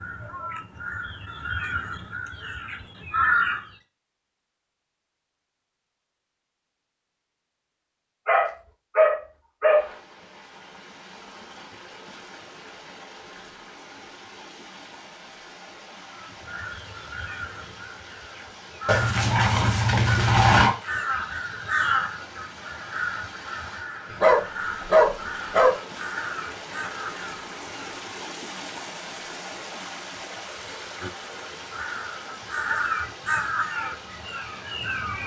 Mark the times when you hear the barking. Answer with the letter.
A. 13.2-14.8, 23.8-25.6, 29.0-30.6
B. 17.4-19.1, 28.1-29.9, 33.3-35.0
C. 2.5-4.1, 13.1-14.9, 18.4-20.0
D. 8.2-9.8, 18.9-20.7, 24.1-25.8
D.